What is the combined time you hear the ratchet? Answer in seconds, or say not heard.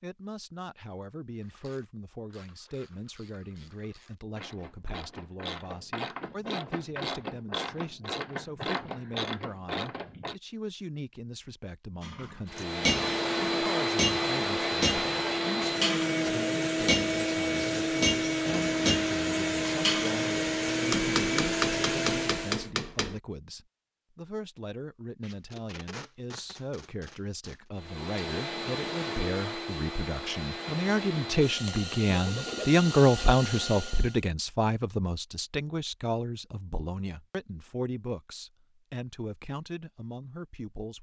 9 s.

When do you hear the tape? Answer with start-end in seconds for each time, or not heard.
25.2-27.6.